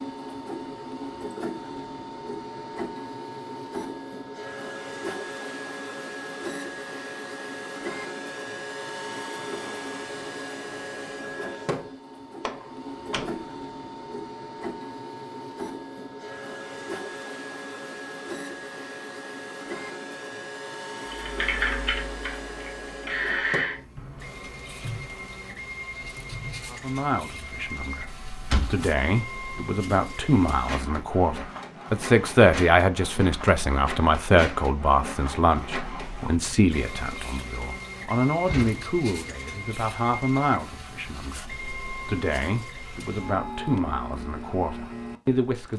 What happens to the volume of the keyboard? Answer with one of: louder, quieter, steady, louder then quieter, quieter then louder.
quieter.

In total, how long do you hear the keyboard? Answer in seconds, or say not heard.
6 s.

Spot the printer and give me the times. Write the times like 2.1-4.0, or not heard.
0.0-45.7.